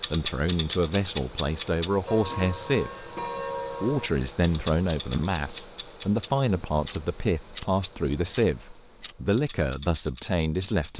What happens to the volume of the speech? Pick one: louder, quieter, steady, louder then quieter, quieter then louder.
steady.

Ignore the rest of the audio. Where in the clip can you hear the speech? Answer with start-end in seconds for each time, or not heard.
0.1-3.1, 3.7-10.9.